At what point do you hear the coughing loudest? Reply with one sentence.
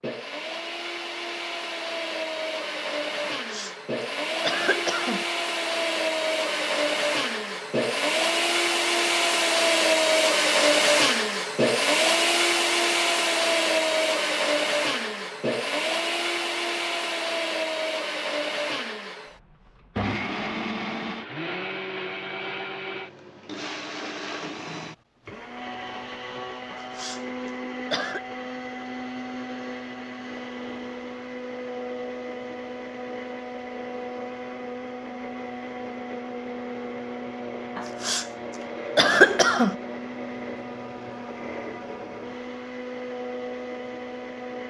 The volume of the coughing peaks at 39 seconds.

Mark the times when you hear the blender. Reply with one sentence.
The blender can be heard from 0.0 to 44.6 s.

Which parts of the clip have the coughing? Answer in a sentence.
The coughing can be heard from 3.5 to 5.2 s, from 26.7 to 28.2 s, from 37.8 to 38.2 s and from 39.0 to 39.8 s.